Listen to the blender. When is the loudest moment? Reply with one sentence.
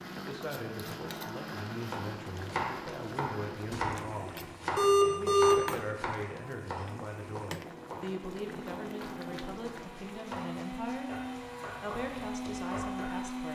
The loudest moment of the blender is at 13 seconds.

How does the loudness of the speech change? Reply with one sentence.
The loudness of the speech stays about the same.